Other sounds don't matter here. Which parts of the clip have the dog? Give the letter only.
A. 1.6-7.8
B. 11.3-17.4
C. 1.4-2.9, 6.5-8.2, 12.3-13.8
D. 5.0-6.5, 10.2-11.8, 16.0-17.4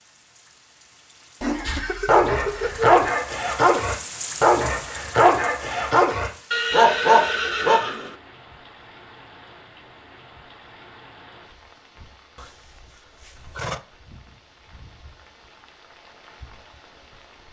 A.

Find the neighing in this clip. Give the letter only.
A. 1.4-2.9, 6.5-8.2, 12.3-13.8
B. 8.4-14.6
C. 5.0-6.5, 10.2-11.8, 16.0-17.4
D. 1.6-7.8
A.